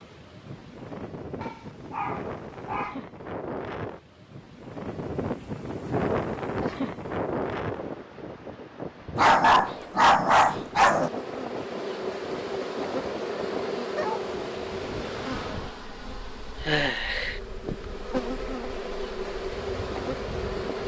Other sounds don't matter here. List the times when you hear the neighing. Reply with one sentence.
You can't hear the neighing here.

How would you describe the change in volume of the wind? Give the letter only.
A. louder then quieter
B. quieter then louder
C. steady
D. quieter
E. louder
A.